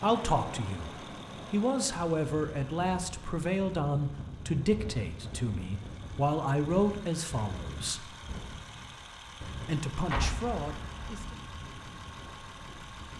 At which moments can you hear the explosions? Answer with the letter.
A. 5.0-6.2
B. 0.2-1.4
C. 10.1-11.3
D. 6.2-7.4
C.